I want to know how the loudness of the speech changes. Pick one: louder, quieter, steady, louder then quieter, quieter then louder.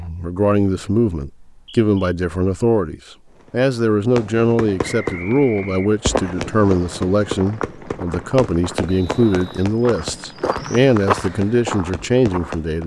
steady.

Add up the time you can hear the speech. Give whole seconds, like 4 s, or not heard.
13 s.